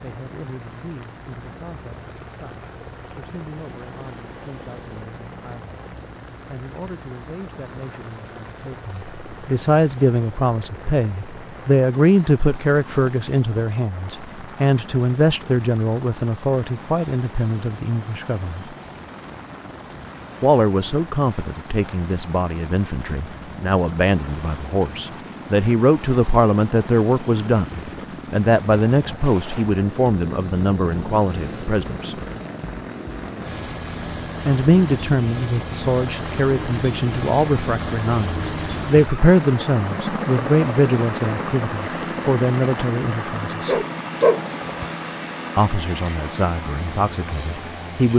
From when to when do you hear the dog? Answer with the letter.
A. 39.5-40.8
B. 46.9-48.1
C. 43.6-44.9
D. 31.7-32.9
C.